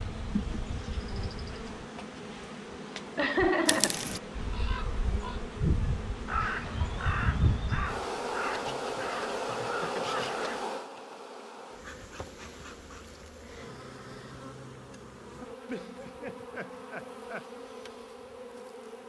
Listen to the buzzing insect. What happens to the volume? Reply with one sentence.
The volume of the buzzing insect goes up, then down.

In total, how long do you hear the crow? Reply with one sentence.
You can hear the crow for 7 seconds altogether.